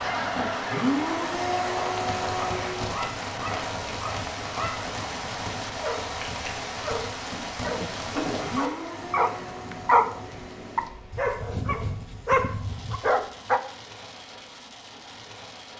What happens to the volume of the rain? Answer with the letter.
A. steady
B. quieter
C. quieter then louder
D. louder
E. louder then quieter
B.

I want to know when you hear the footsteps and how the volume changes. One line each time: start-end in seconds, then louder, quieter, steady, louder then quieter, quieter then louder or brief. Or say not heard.
not heard.